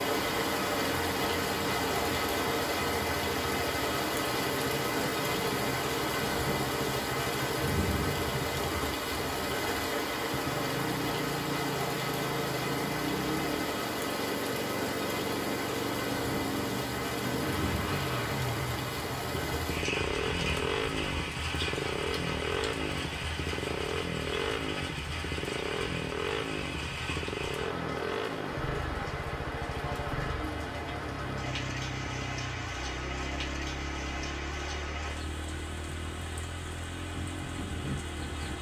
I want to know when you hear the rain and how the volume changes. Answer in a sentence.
You can hear the rain from 0.0 to 38.5 s, getting quieter.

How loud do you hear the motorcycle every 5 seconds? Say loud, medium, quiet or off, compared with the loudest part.
medium, medium, loud, loud, loud, loud, medium, medium.